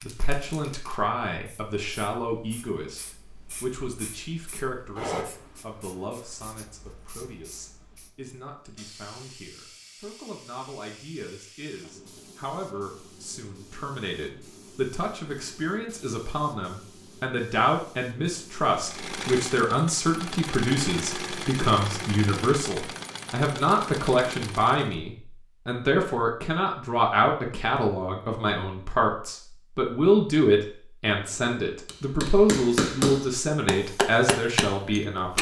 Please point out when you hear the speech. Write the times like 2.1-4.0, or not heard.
0.0-35.3.